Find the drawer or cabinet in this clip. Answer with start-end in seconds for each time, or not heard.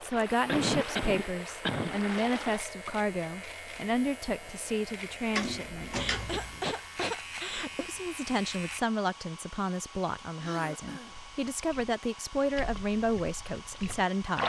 5.3-6.6.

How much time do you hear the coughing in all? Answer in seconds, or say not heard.
4 s.